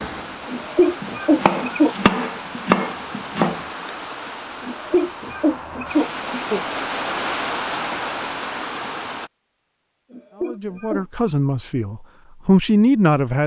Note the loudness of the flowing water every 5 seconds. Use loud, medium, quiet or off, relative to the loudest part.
medium, loud, off.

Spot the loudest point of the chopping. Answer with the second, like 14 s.
3 s.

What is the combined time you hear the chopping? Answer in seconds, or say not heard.
4 s.